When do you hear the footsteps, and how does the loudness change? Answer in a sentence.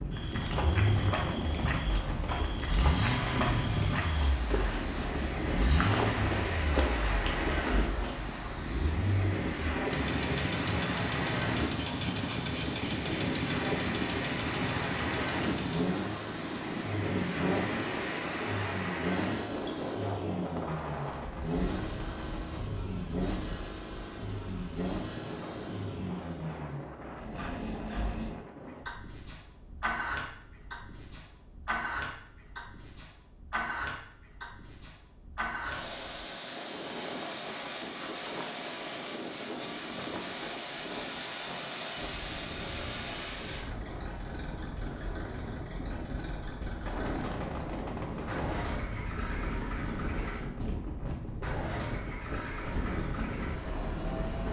The footsteps can be heard from 0.1 to 8.2 s, at a steady volume.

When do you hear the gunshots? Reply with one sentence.
The gunshots can be heard from 0.6 to 2.5 s, from 20.9 to 22.6 s and from 46.9 to 48.8 s.